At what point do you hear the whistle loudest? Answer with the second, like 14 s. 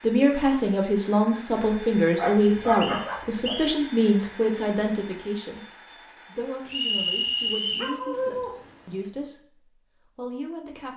7 s.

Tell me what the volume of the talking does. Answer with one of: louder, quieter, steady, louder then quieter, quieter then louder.
quieter.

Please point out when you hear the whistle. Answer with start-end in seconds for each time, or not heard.
2.4-3.7, 6.7-7.9.